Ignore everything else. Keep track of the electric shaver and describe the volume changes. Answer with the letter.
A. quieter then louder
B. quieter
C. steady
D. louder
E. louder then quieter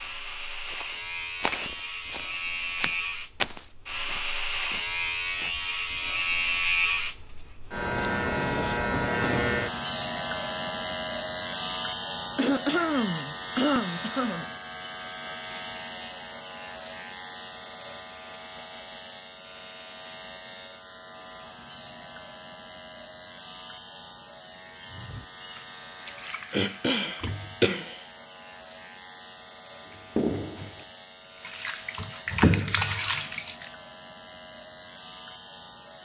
B.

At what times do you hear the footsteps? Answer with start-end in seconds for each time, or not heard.
0.7-5.5.